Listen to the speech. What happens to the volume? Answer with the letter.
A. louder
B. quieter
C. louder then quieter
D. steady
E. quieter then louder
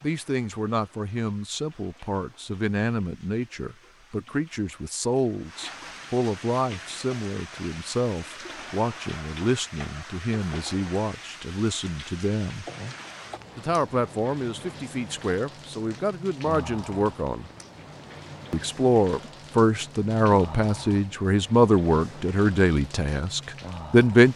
A.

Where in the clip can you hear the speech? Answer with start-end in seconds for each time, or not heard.
0.0-12.7, 13.6-17.5, 18.5-24.3.